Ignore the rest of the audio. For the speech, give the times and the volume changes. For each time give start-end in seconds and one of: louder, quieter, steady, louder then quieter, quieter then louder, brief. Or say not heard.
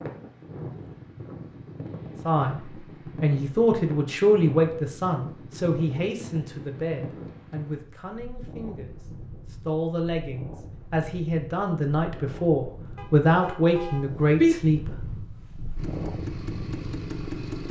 2.2-14.9 quieter then louder.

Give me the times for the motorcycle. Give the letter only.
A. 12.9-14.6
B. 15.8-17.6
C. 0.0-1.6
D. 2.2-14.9
B.